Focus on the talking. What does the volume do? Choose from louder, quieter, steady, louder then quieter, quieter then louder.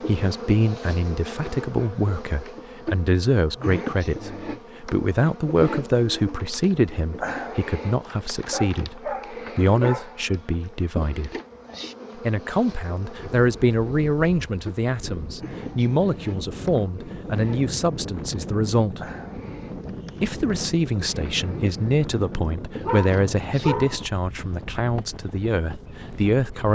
steady.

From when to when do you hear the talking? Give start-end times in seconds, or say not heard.
0.1-11.3, 12.2-19.0, 20.2-26.6.